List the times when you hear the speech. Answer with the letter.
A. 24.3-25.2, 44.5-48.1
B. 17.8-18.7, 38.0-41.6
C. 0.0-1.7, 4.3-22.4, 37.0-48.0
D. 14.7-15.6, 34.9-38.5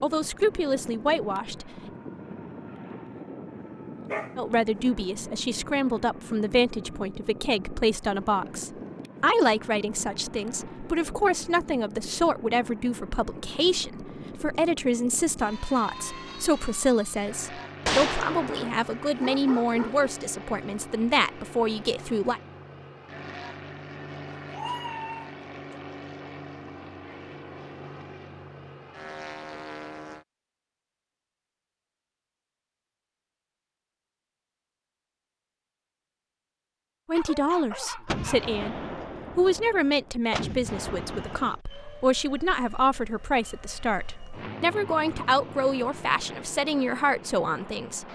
C.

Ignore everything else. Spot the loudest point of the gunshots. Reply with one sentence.
The loudest moment of the gunshots is at 18 seconds.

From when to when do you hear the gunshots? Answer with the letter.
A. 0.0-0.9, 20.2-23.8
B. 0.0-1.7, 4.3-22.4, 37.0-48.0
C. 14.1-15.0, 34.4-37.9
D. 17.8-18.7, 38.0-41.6
D.